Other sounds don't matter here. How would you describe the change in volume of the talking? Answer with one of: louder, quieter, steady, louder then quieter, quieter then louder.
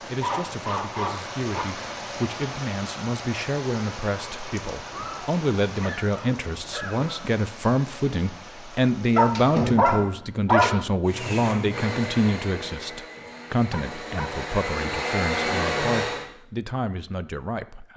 louder then quieter.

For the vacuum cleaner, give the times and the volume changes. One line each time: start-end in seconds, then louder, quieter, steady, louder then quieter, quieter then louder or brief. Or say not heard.
11.1-16.3 quieter then louder.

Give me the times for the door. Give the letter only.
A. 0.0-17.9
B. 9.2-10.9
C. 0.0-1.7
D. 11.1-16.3
B.